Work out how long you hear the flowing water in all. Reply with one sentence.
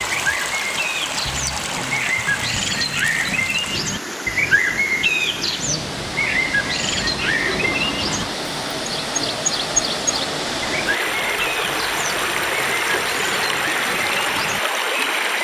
You can hear the flowing water for 15 seconds altogether.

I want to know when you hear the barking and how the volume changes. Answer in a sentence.
The barking can't be heard in this clip.